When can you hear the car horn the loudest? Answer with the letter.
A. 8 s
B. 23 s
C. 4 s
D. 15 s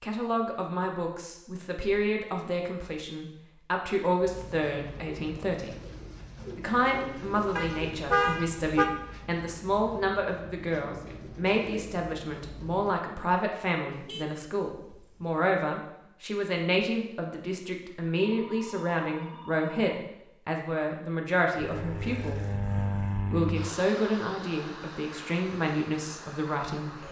A.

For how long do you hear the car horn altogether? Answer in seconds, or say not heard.
3 s.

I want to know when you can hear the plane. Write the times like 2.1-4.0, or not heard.
21.6-27.0.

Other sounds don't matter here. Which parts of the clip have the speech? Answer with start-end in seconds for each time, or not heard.
0.0-5.8, 6.5-22.4, 23.3-27.0.